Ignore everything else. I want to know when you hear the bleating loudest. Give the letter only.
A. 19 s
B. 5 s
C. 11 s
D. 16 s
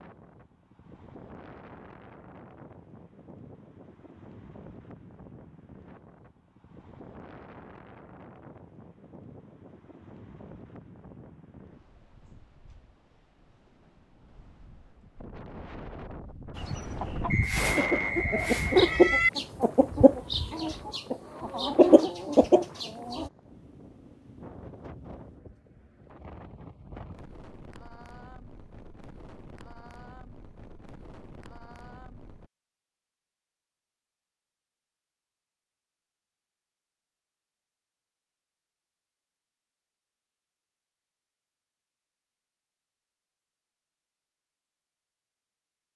A.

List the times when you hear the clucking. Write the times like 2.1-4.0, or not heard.
16.6-23.3.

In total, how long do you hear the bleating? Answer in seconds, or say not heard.
2 s.